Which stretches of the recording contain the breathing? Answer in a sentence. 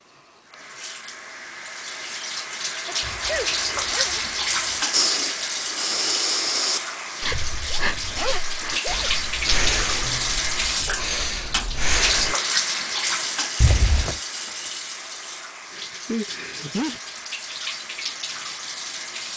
The breathing can be heard from 4.9 to 12.3 s.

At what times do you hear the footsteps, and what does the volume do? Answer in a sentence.
The footsteps can't be heard in this clip.